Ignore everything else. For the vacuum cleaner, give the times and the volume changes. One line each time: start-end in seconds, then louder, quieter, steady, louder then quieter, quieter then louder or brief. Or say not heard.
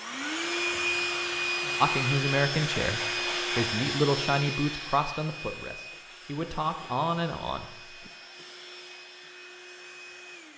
0.0-10.5 quieter.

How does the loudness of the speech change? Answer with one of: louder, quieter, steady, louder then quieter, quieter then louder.
quieter then louder.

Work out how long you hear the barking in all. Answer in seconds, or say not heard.
not heard.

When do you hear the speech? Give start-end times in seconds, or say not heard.
1.8-7.7.